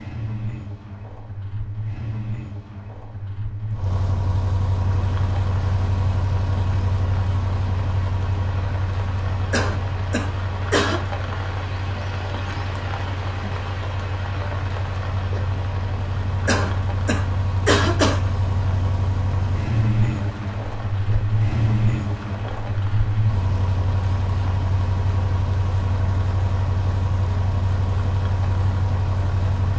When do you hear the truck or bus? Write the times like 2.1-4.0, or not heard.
0.0-29.7.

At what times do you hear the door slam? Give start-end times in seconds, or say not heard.
not heard.